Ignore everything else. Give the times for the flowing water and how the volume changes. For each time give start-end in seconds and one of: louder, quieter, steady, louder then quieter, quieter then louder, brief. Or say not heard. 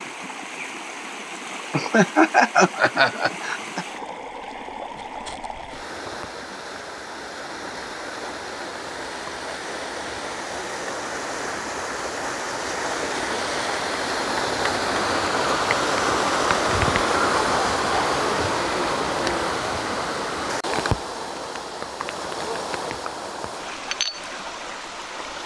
0.0-25.4 louder then quieter.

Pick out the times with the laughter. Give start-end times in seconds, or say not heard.
1.7-3.9.